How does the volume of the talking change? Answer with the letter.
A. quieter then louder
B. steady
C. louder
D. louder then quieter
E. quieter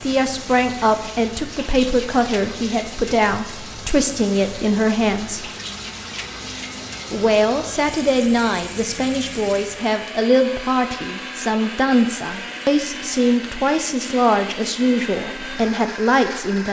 B.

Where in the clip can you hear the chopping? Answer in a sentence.
You can't hear the chopping here.